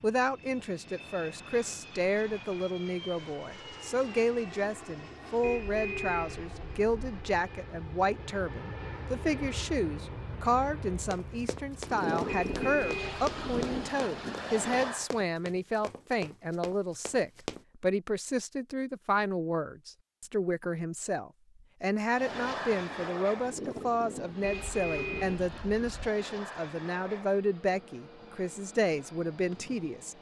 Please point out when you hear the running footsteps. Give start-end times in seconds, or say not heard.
11.0-17.6.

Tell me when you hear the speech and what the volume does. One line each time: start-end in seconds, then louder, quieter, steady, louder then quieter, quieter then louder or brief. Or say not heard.
0.0-30.1 steady.